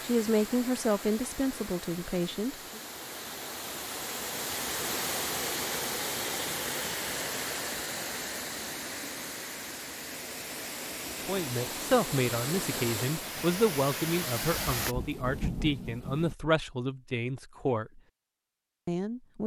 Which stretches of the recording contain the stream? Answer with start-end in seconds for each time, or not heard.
0.0-14.9.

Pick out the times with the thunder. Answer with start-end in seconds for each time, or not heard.
14.9-16.4.